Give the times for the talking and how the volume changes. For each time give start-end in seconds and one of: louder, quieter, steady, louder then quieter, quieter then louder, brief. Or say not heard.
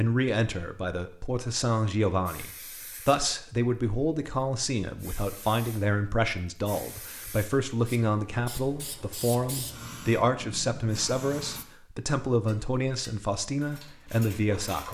0.0-14.8 steady.